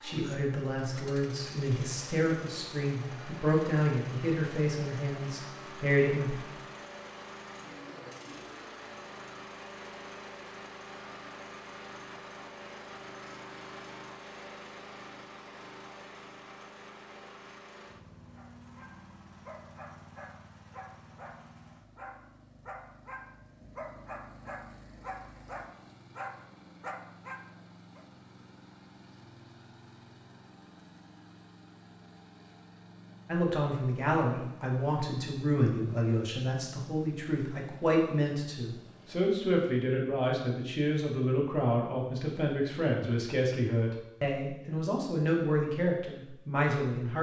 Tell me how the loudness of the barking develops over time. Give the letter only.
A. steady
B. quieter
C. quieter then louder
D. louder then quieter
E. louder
E.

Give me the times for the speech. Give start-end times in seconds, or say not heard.
0.0-6.3, 33.2-47.1.